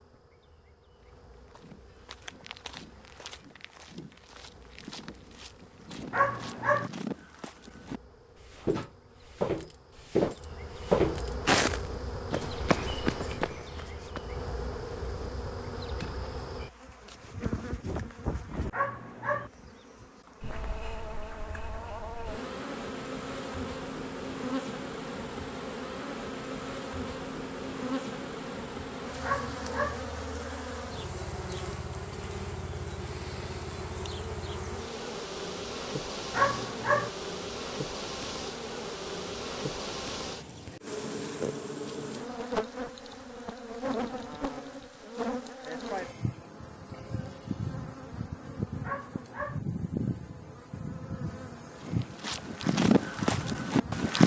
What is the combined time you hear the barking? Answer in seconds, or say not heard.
4 s.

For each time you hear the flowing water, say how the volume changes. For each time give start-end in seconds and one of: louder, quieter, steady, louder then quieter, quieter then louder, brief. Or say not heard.
not heard.